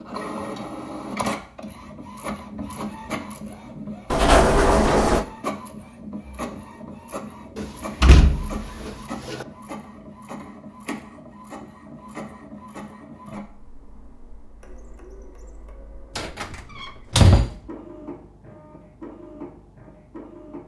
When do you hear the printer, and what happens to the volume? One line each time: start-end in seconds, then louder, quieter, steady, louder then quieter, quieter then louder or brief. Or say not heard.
0.0-20.6 quieter.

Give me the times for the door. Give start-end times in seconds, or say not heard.
4.1-5.2, 7.5-9.4, 16.1-17.6.